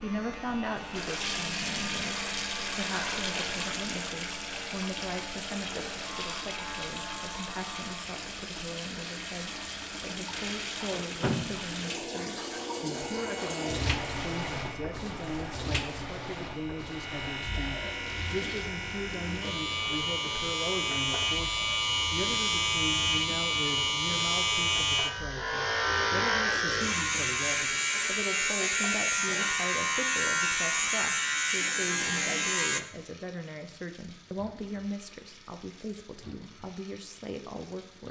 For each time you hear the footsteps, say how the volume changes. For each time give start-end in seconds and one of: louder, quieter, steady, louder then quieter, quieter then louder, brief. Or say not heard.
not heard.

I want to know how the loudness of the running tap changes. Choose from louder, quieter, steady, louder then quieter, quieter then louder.
quieter.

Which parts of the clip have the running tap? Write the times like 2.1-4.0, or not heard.
0.0-38.0.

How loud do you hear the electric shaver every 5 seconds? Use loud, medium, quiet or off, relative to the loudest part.
quiet, quiet, quiet, medium, loud, loud, loud, off.